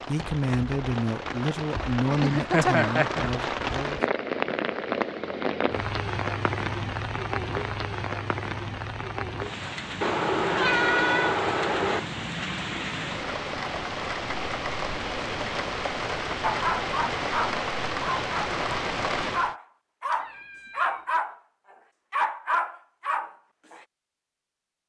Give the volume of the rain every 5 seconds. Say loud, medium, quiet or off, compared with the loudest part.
loud, loud, loud, loud, off.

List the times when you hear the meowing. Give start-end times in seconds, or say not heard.
2.1-3.3, 10.0-12.0, 20.1-21.1.